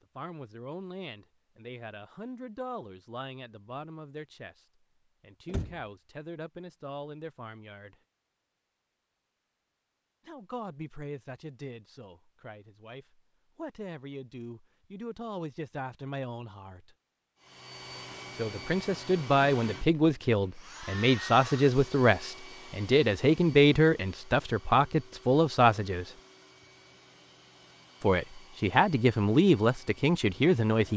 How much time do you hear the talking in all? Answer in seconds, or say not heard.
25 s.